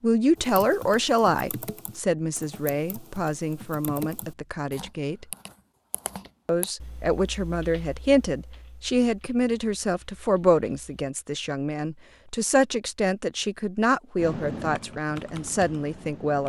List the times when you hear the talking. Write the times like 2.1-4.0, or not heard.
0.0-5.2, 6.5-16.4.